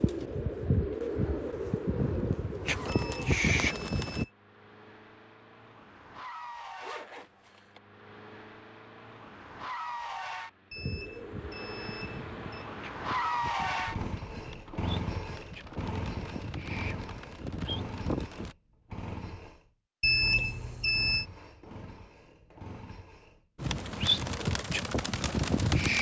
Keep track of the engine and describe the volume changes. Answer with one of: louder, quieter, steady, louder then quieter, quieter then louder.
louder then quieter.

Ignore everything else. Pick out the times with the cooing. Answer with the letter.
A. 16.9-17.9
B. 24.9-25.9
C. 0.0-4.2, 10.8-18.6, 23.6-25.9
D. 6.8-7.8
C.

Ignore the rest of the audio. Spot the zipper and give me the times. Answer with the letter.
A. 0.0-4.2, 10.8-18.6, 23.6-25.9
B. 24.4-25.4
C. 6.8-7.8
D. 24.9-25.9
C.